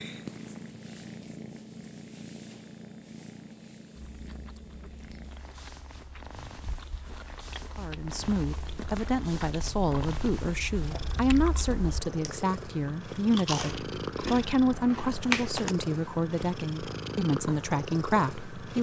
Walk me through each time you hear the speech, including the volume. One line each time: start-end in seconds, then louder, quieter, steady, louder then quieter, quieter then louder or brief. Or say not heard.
7.8-18.7 steady.